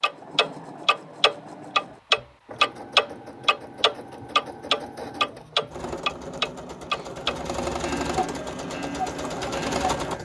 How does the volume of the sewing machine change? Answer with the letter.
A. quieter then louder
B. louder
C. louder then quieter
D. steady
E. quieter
B.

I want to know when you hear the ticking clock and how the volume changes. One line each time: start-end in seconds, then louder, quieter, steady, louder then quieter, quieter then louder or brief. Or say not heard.
0.0-10.2 quieter.